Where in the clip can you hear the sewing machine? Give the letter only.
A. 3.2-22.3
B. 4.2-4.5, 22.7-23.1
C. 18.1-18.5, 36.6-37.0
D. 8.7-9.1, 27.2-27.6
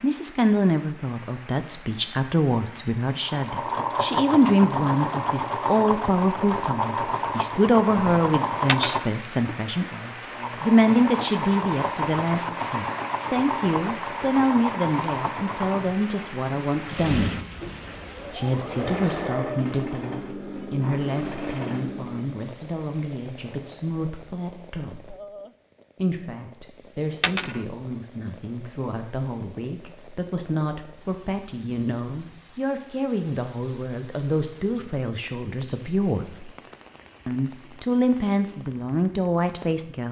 A.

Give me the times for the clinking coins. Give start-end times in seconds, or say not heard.
8.7-9.1, 27.2-27.6.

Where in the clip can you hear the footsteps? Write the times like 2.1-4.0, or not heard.
not heard.